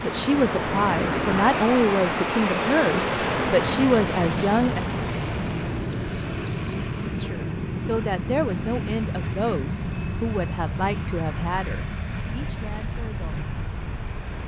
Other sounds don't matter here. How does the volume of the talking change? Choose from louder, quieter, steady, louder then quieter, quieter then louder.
quieter.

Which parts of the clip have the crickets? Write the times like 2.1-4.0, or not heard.
0.0-7.4.